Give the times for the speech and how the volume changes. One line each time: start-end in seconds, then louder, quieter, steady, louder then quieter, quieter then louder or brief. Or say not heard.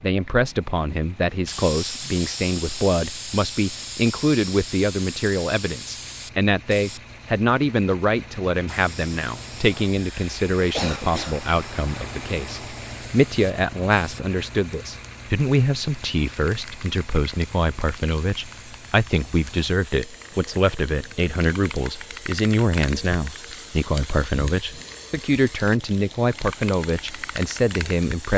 0.0-28.3 steady.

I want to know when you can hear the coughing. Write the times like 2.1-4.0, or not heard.
9.9-11.4.